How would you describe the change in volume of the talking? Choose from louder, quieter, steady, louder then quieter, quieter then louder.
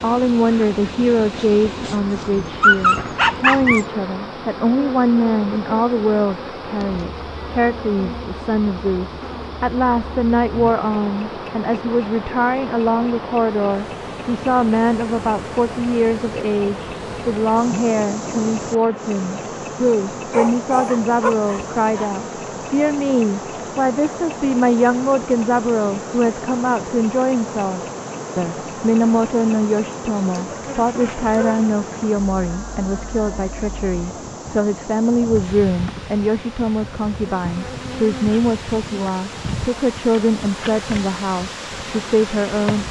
steady.